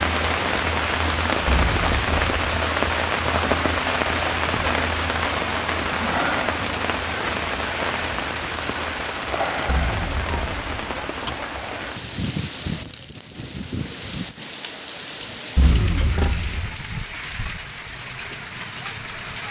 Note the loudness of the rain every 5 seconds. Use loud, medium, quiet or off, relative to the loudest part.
loud, loud, medium, medium.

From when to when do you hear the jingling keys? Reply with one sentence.
You can hear the jingling keys from 1.4 to 2.4 s, from 9.7 to 11.4 s and from 15.6 to 16.8 s.